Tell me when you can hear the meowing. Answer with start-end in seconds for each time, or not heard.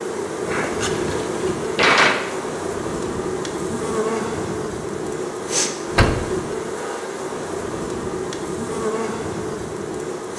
not heard.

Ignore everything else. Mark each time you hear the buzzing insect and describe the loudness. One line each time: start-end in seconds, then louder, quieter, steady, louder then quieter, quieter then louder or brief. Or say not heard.
0.0-10.3 steady.